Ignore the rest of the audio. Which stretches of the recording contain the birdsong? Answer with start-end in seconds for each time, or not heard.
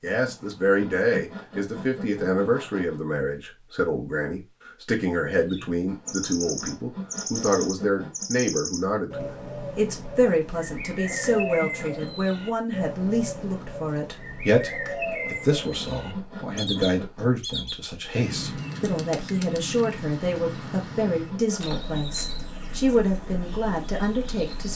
5.2-24.7.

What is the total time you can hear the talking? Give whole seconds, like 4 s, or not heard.
25 s.